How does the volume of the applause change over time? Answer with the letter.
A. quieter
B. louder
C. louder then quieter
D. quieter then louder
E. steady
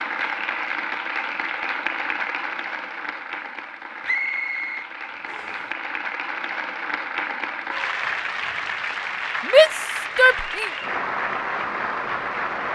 D.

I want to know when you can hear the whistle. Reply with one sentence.
The whistle can be heard from 4.0 to 5.7 s.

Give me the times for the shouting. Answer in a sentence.
The shouting can be heard from 9.4 to 10.7 s.